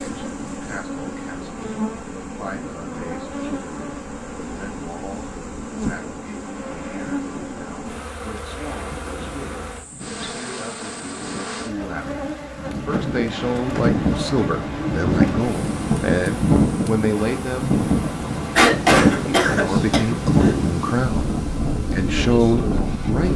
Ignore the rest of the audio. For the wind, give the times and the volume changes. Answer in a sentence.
The wind can be heard from 0.0 to 23.3 s, getting louder.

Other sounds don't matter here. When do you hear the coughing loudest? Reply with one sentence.
The loudest moment of the coughing is at 19 seconds.